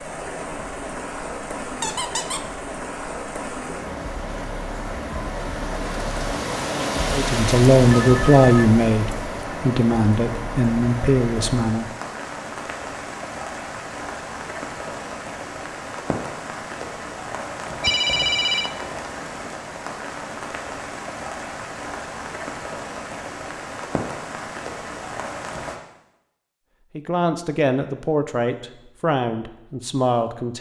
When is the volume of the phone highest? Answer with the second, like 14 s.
18 s.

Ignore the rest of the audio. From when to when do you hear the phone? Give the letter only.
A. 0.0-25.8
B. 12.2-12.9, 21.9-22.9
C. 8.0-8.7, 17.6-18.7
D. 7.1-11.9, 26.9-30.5
C.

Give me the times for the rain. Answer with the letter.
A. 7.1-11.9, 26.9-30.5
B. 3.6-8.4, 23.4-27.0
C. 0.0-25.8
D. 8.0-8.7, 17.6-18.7
C.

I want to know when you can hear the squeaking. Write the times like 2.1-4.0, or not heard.
1.8-2.5.